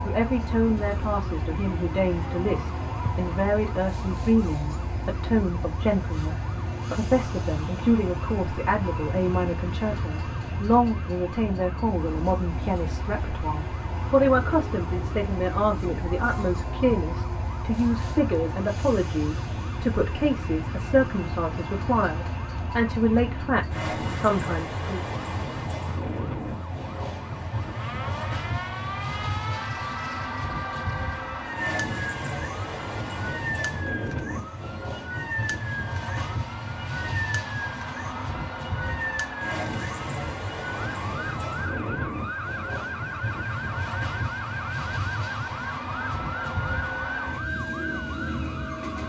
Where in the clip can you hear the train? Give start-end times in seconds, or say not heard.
0.0-49.0.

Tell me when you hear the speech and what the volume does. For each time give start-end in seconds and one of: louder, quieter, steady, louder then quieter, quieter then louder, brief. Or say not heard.
0.0-25.0 steady.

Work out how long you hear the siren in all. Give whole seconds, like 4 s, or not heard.
49 s.